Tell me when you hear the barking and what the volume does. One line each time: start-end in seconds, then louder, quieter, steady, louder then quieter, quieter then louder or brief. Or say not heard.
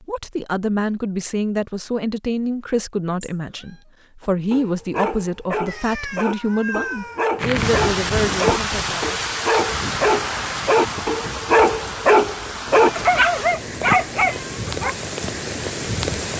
4.2-14.9 louder.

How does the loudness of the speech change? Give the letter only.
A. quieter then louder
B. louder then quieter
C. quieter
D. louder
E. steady
E.